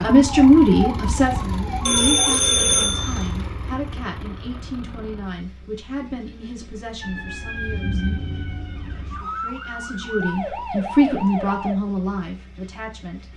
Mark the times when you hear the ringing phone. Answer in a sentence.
You can hear the ringing phone from 1.9 to 3.3 s.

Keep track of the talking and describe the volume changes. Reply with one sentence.
The volume of the talking goes down, then up.